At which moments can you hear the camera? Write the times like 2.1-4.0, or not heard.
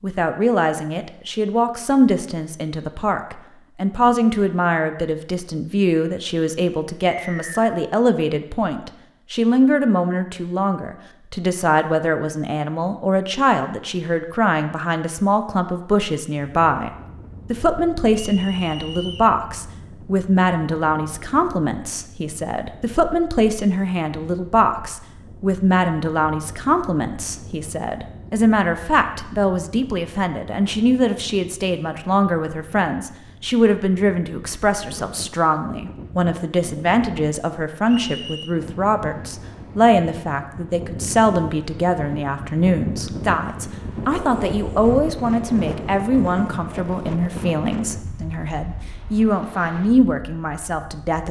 not heard.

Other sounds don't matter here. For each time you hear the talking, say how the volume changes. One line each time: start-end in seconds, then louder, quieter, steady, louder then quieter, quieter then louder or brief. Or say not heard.
0.0-16.9 steady
17.5-51.2 steady.